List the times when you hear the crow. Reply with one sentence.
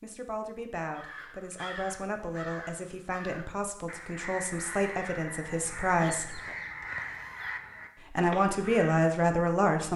The crow can be heard from 0.9 to 9.1 s.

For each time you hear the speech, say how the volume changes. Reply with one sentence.
The speech can be heard from 0.0 to 6.4 s, getting louder; and briefly from 8.1 to 9.9 s.